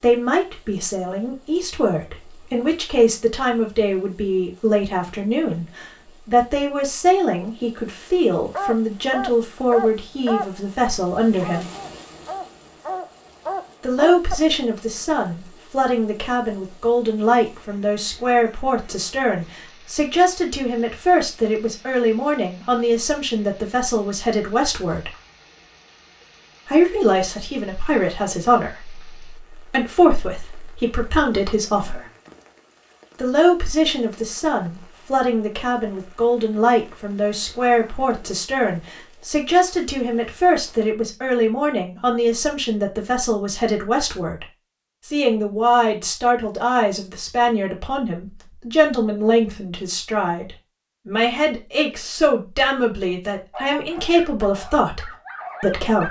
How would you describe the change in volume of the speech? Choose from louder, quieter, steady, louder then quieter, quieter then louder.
steady.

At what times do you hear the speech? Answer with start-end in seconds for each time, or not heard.
0.0-11.7, 13.8-25.1, 26.6-32.0, 33.1-44.5, 45.0-56.0.